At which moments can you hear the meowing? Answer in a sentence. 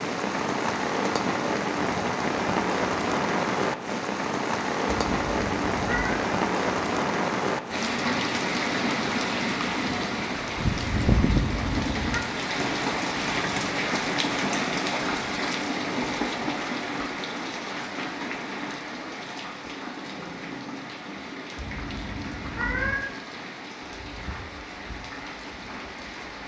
You can hear the meowing from 4.8 to 6.2 s, from 11.3 to 12.2 s and from 21.6 to 22.9 s.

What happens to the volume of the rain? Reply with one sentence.
The volume of the rain goes down.